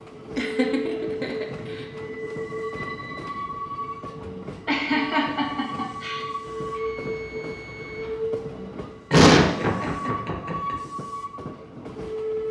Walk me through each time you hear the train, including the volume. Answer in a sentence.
You can hear the train from 0.0 to 12.4 s, at a steady volume.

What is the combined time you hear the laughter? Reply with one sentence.
The laughter can be heard for 5 seconds in total.